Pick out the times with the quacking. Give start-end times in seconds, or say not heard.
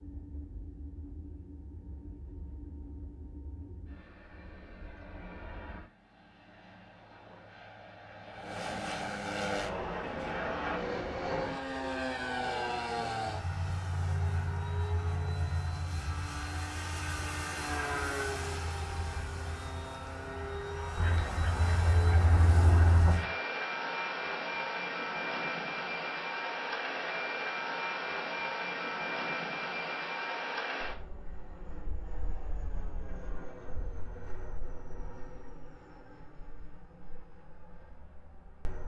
20.9-23.3.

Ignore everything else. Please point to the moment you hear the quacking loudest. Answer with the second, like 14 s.
23 s.